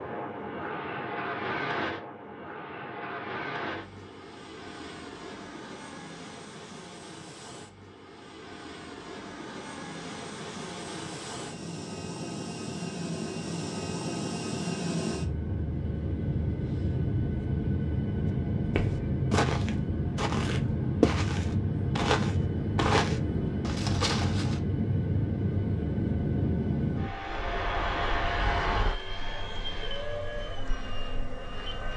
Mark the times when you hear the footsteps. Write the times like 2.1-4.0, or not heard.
18.2-24.6.